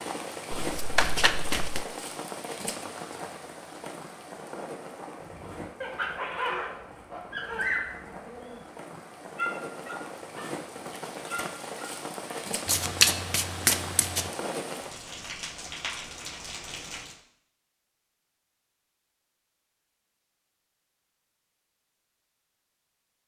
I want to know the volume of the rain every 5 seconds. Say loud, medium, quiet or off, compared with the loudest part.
loud, medium, loud, loud, off.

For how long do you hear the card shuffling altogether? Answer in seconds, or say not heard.
3 s.